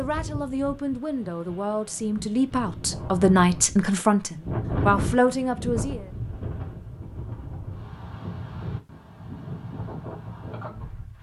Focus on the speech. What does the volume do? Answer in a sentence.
The loudness of the speech goes up.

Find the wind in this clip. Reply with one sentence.
The wind can be heard from 0.0 to 11.1 s.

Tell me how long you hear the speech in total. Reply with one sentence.
You can hear the speech for 6 seconds altogether.